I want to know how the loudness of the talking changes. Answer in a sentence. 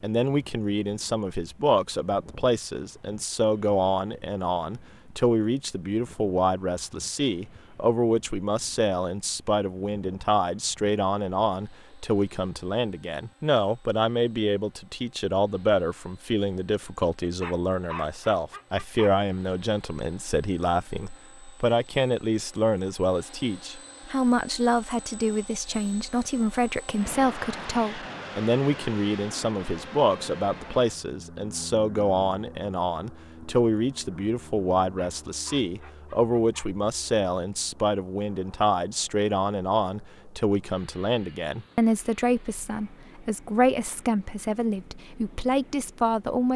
The loudness of the talking stays about the same.